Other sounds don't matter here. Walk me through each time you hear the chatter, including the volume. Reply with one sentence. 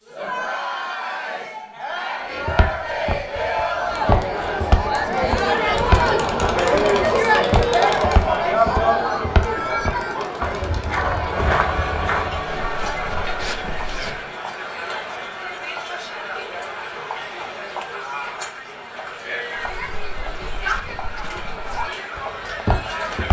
The chatter can be heard from 0.0 to 23.2 s, getting louder then quieter.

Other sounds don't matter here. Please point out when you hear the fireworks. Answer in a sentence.
You can't hear the fireworks here.